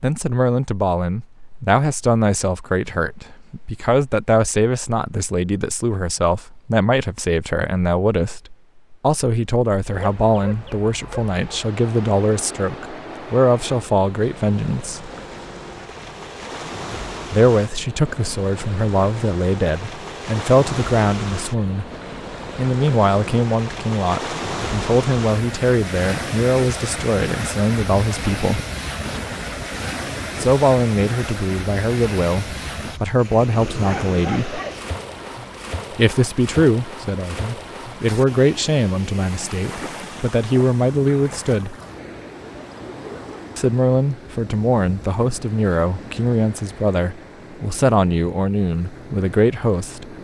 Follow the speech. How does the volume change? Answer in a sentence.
The loudness of the speech stays about the same.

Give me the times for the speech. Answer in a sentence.
You can hear the speech from 0.0 to 15.1 s, from 17.3 to 21.9 s, from 22.6 to 28.6 s, from 30.4 to 34.6 s, from 36.0 to 41.8 s and from 43.5 to 50.1 s.